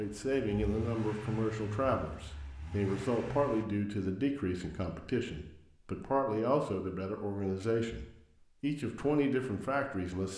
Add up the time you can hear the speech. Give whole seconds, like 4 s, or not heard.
10 s.